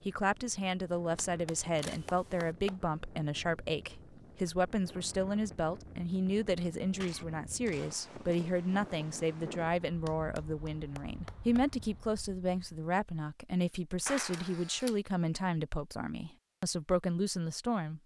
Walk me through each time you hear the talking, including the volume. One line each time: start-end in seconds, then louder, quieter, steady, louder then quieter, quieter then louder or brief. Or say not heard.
0.0-18.0 steady.